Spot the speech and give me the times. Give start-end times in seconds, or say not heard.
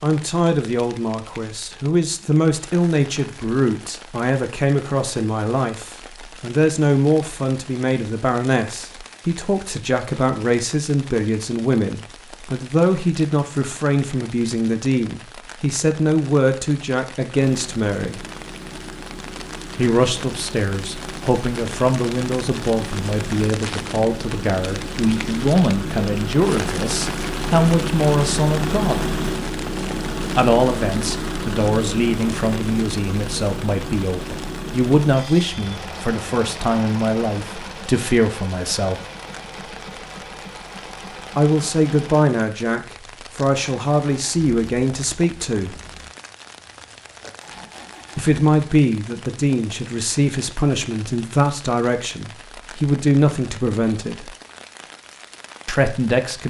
0.0-18.2, 19.8-29.1, 30.4-39.0, 41.4-45.8, 48.1-54.3, 55.6-56.4.